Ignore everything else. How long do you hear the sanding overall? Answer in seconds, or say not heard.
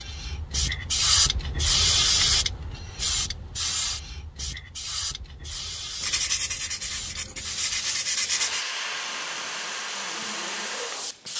3 s.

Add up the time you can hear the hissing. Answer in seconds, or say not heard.
11 s.